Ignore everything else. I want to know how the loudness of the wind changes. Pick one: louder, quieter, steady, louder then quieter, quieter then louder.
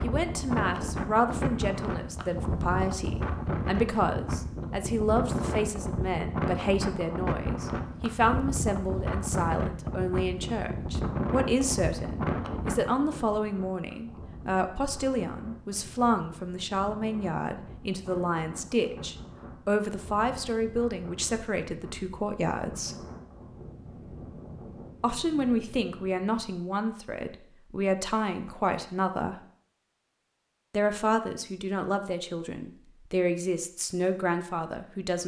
quieter.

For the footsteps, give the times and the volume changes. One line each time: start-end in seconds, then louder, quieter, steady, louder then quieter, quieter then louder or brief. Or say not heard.
not heard.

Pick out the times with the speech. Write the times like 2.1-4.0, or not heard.
0.0-23.0, 25.0-29.4, 30.7-35.2.